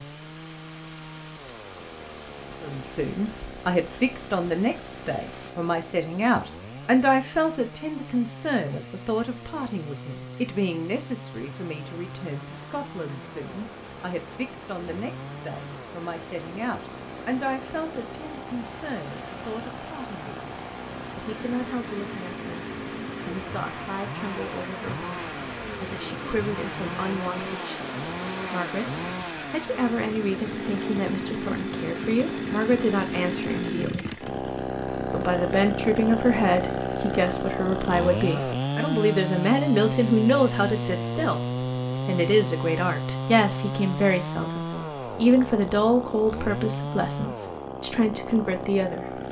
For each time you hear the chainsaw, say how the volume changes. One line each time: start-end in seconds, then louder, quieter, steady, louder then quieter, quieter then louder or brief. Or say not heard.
0.0-49.2 louder.